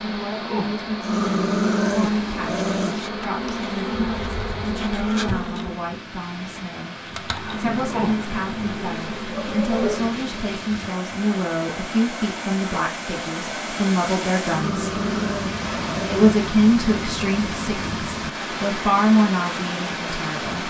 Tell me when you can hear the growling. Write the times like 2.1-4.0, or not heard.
1.0-3.1, 7.6-10.1, 14.4-16.4.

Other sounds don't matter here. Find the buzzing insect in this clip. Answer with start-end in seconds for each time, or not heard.
0.0-6.0, 7.0-10.4.